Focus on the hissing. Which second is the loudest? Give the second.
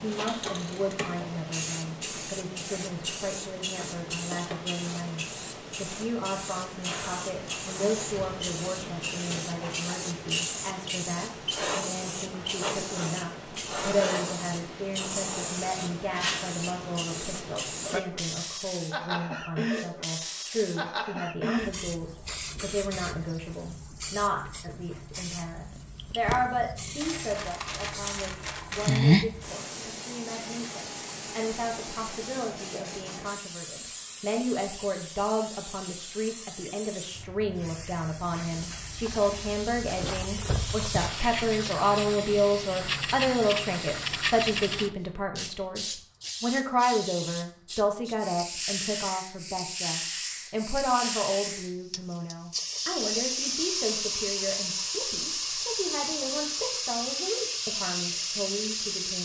29 s.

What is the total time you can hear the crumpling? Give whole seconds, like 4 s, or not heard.
2 s.